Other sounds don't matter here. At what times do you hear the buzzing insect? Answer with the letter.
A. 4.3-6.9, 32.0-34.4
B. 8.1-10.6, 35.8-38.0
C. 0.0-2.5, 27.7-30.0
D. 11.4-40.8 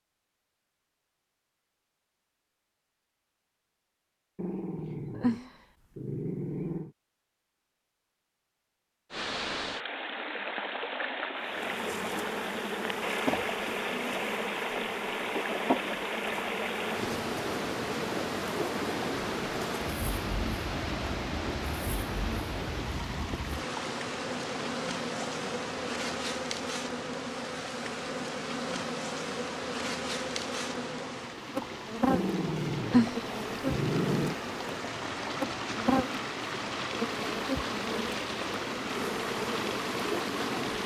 D.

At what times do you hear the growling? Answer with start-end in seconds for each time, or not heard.
4.3-6.9, 32.0-34.4.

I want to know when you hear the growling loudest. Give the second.
33 s.